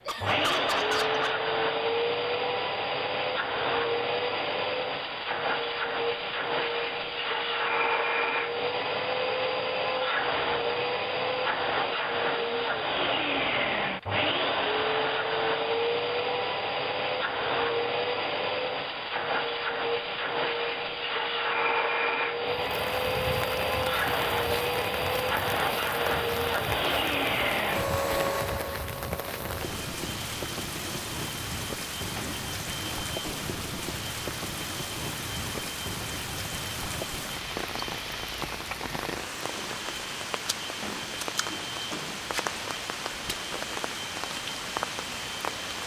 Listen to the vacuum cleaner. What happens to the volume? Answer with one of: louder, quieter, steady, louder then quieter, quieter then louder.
quieter.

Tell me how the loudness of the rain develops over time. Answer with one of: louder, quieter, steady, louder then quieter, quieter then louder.
steady.